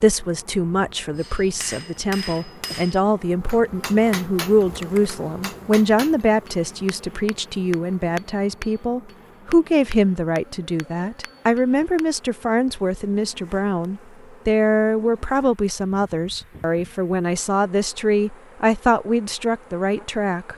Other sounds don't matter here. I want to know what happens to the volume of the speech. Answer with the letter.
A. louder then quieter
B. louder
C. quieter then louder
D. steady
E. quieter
D.